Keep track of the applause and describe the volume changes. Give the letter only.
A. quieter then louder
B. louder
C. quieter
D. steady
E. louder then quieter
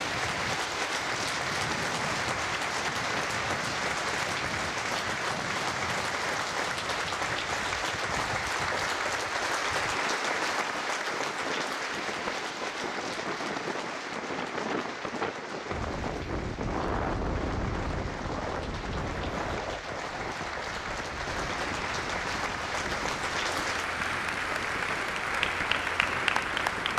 A.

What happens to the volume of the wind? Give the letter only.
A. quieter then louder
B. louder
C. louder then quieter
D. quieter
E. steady
C.